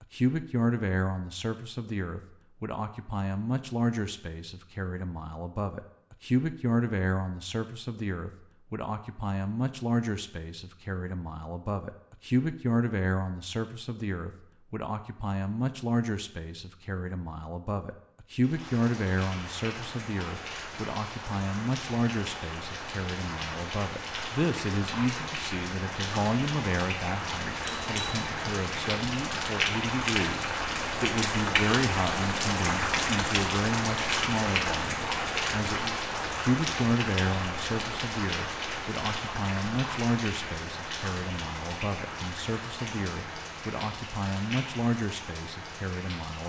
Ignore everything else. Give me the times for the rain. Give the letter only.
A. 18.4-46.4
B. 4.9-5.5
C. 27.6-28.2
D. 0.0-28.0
A.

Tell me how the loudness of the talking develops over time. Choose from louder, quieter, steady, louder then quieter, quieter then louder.
steady.